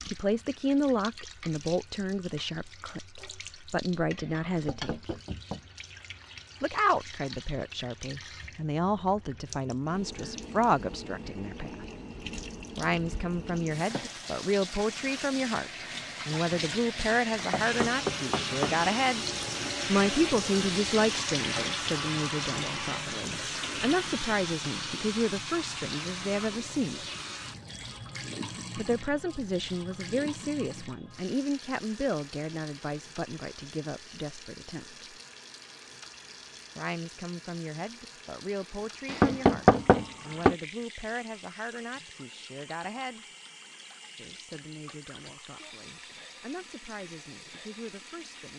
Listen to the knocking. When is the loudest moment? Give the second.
40 s.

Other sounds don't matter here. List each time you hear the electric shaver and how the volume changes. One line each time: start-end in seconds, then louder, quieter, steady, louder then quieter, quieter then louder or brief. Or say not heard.
not heard.